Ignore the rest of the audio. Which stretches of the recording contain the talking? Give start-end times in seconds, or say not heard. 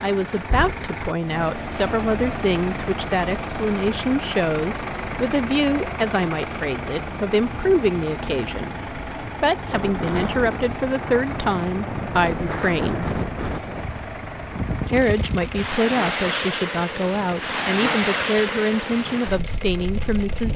0.0-13.1, 14.8-20.5.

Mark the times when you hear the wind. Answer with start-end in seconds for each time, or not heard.
9.6-20.5.